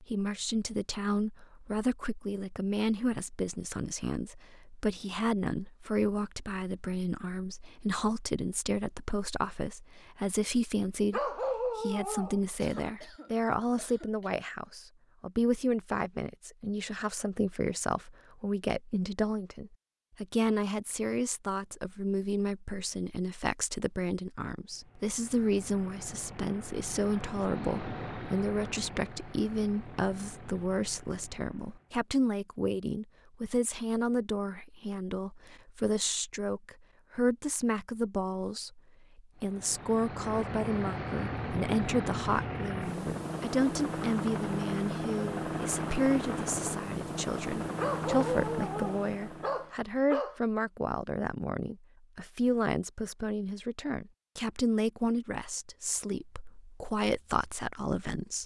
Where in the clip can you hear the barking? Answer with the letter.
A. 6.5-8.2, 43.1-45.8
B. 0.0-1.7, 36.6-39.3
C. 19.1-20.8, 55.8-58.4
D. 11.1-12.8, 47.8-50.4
D.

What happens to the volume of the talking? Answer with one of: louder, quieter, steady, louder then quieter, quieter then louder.
steady.